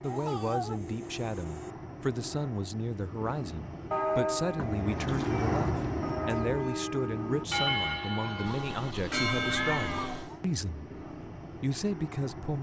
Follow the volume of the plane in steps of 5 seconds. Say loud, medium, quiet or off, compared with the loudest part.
medium, loud, medium.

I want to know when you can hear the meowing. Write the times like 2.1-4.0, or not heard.
0.0-1.8, 4.5-6.8, 8.4-10.4.